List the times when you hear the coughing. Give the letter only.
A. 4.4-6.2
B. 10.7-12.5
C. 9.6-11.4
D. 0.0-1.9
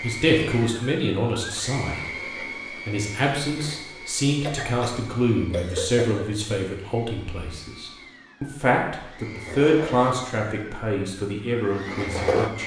A.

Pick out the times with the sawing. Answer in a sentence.
The sawing can't be heard in this clip.